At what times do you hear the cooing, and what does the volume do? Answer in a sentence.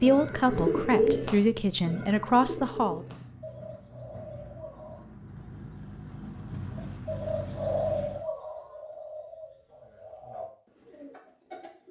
The cooing can be heard from 0.0 to 5.0 s, getting quieter; and from 6.8 to 11.8 s, getting quieter.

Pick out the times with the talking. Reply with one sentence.
You can hear the talking from 0.0 to 3.0 s.